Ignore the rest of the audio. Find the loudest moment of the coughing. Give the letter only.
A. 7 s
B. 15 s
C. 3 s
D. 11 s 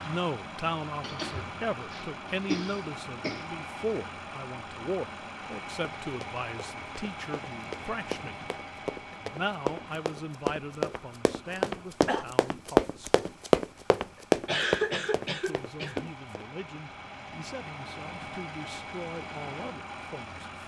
B.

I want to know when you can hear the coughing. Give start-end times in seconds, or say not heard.
1.0-3.5, 11.6-12.2, 14.2-16.1.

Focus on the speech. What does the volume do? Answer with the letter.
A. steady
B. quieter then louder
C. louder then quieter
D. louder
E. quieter
E.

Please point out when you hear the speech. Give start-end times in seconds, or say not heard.
0.0-8.3, 9.1-13.1, 15.3-20.4.